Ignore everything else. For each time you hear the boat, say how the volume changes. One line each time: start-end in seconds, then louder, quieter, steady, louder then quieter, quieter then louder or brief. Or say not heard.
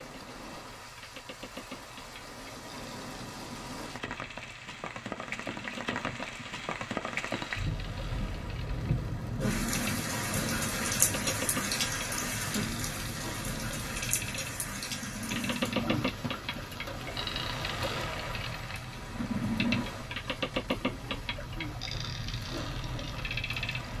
0.0-23.9 louder.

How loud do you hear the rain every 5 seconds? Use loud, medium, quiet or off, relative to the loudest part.
medium, loud, loud, medium, quiet.